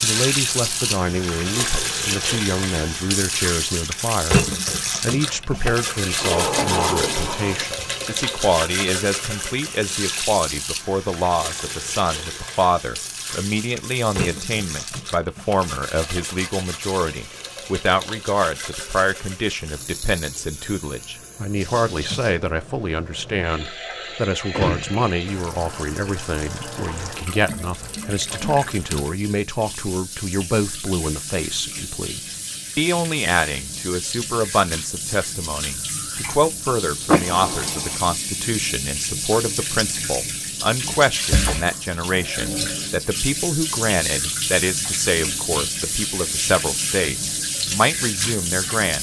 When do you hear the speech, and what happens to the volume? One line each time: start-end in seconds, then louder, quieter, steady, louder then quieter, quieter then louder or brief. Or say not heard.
0.0-48.9 steady.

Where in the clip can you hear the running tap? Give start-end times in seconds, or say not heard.
0.0-48.9.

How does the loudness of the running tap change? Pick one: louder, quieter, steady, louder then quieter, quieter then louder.
quieter then louder.